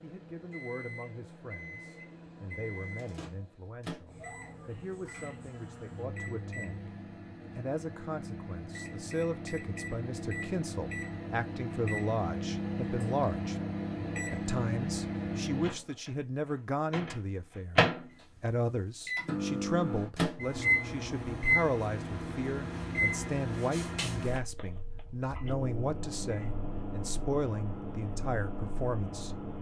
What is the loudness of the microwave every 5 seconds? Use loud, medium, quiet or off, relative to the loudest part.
quiet, medium, loud, loud, loud, medium.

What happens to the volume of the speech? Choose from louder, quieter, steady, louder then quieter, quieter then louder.
louder.